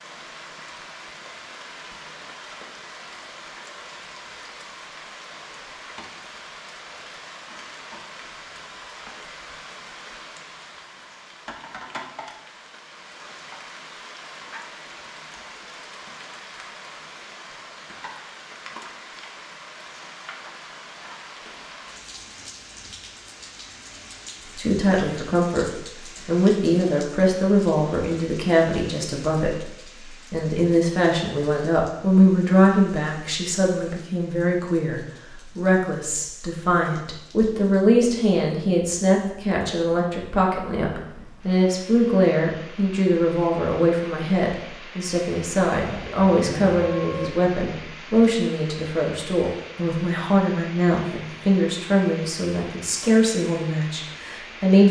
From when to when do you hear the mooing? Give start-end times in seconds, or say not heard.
45.8-47.3.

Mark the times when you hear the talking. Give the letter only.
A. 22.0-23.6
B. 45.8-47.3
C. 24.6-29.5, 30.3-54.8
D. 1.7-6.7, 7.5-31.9
C.